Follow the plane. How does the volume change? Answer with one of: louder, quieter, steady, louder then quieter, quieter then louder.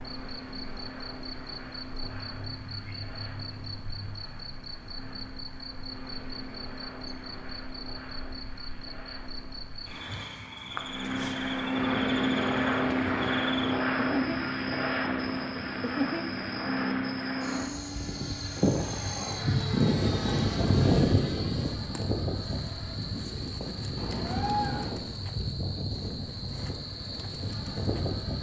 louder then quieter.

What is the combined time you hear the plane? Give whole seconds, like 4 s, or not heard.
28 s.